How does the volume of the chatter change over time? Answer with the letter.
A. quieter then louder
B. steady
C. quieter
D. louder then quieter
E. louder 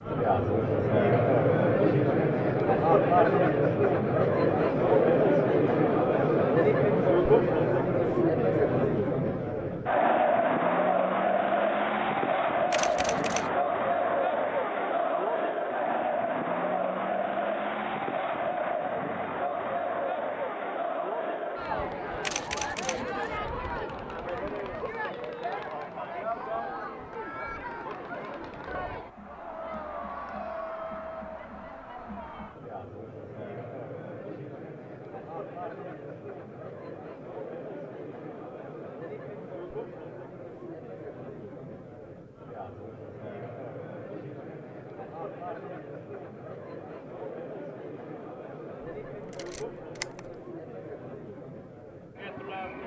C.